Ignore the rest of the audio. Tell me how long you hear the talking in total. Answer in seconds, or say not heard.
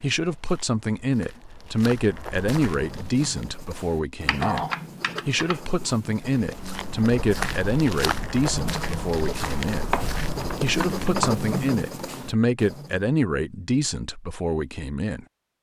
14 s.